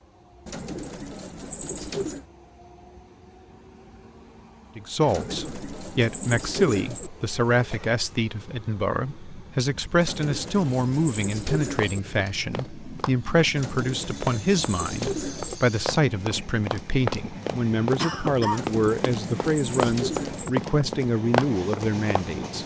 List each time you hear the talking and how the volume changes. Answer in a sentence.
The talking can be heard from 4.8 to 22.6 s, at a steady volume.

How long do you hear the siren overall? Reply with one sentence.
The siren can't be heard in this clip.